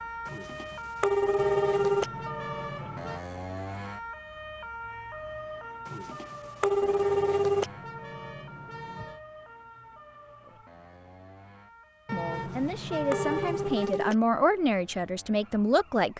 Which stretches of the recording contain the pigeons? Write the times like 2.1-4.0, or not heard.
not heard.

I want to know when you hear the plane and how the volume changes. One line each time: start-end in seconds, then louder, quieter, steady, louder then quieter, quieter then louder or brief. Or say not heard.
not heard.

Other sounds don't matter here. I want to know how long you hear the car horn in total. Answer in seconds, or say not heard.
6 s.